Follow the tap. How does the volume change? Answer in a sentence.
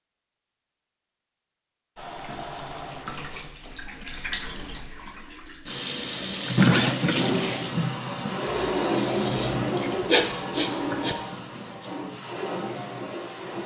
The loudness of the tap goes up, then down.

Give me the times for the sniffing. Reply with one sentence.
The sniffing can be heard from 8.5 to 11.2 s.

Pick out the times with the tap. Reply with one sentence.
The tap can be heard from 1.9 to 13.6 s.